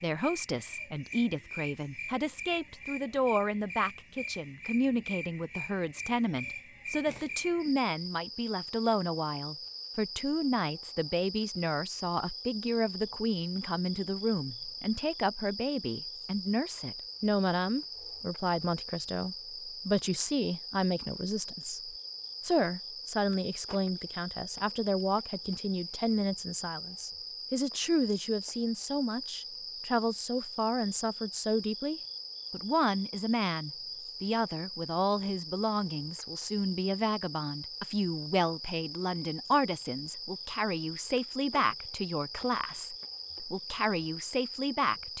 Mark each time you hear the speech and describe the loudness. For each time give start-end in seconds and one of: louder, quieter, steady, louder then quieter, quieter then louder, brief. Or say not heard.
0.0-45.1 steady.